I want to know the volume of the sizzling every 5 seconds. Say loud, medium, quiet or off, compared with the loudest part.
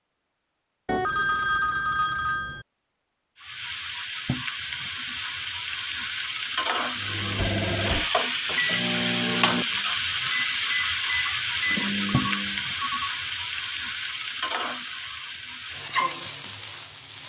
medium, loud, loud, medium.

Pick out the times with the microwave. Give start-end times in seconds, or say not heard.
7.0-12.7.